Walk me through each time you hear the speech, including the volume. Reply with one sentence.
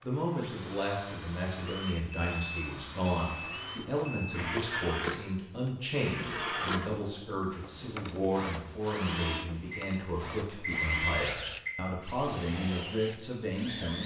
You can hear the speech from 0.0 to 14.0 s, at a steady volume.